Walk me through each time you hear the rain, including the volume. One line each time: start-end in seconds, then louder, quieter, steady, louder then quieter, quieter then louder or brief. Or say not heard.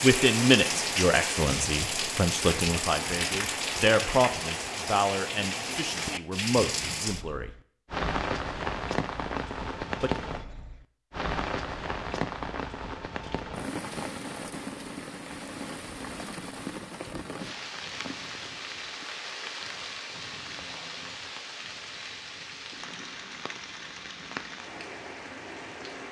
0.0-26.0 quieter.